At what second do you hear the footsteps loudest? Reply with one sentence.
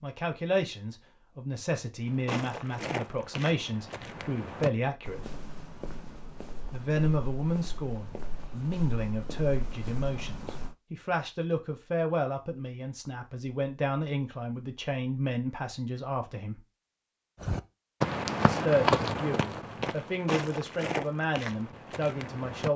The volume of the footsteps peaks at 19 seconds.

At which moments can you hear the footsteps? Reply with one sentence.
The footsteps can be heard from 2.0 to 10.8 s and from 17.4 to 22.7 s.